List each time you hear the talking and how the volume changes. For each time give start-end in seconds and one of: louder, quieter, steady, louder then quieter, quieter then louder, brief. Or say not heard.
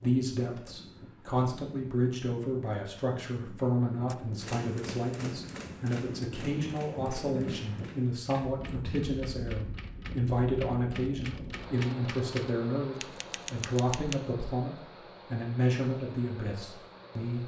0.0-17.4 steady.